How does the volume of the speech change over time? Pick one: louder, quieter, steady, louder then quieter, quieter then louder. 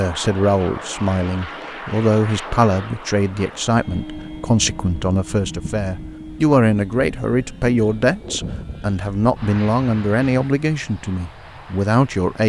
steady.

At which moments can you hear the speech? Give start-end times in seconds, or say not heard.
0.0-12.4.